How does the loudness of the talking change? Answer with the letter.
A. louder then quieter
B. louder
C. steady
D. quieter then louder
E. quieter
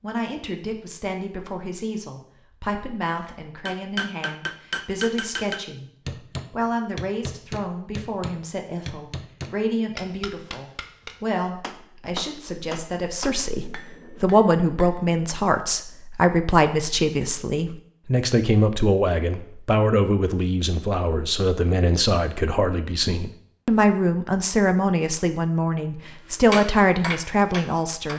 B.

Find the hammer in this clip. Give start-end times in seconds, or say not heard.
3.6-15.4, 26.5-28.1.